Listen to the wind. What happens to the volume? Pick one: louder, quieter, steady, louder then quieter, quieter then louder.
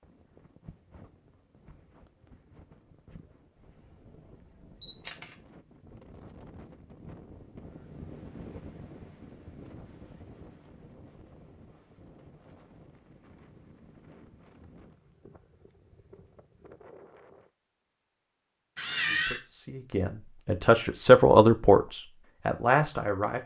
louder then quieter.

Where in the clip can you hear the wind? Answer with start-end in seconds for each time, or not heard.
0.0-17.5.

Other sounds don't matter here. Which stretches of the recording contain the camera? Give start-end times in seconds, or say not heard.
4.8-5.3, 18.8-19.4.